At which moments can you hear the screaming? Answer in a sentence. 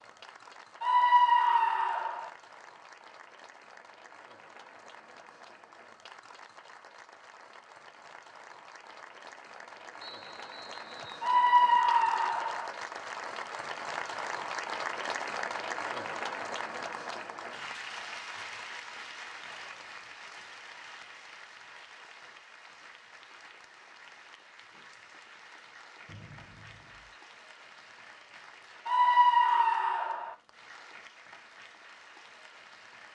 You can hear the screaming from 0.8 to 2.3 s, from 11.2 to 12.7 s and from 28.9 to 30.4 s.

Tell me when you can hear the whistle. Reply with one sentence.
You can hear the whistle from 10.0 to 11.3 s and from 26.1 to 27.2 s.